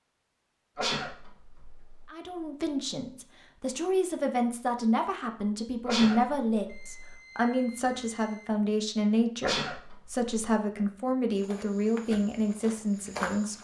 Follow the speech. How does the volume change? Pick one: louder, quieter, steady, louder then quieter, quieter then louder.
steady.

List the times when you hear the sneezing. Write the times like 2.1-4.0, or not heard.
0.8-2.0, 5.8-7.1, 9.4-10.3.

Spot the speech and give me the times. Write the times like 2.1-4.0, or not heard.
2.0-13.6.